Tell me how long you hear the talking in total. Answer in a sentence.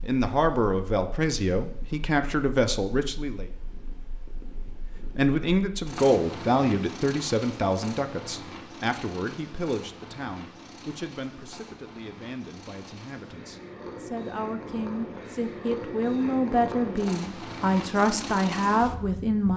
You can hear the talking for 18 seconds altogether.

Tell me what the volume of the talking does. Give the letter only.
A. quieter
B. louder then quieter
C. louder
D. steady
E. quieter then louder
E.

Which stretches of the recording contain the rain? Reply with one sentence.
The rain can't be heard in this clip.